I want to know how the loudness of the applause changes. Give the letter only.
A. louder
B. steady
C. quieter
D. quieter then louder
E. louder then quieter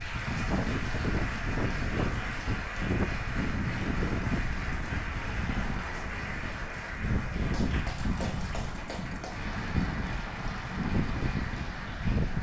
B.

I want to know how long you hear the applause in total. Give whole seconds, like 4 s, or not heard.
12 s.